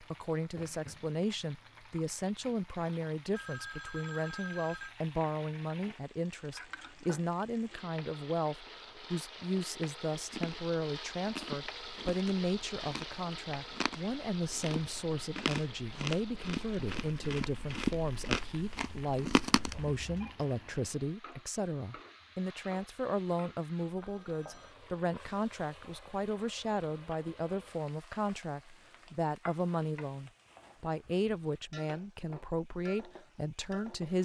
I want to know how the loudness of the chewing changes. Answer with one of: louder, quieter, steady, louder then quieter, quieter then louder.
louder.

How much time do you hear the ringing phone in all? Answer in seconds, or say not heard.
3 s.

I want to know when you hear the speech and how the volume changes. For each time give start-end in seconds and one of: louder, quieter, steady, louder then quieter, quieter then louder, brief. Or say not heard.
0.0-34.2 steady.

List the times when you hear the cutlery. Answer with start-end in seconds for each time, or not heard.
not heard.